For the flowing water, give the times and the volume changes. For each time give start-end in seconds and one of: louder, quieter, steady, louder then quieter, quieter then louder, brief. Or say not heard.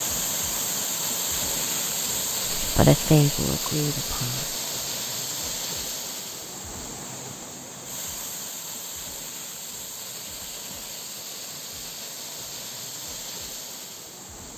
0.0-14.5 quieter.